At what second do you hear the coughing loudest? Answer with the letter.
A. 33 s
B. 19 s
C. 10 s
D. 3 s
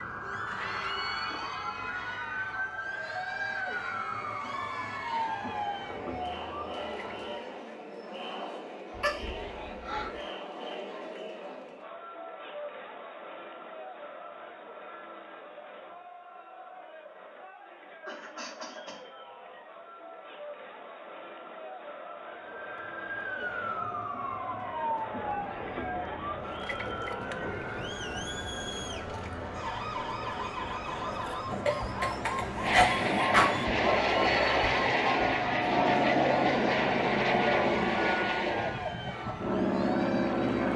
A.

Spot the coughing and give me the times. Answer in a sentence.
You can hear the coughing from 8.9 to 10.2 s, from 18.0 to 19.0 s and from 31.6 to 33.6 s.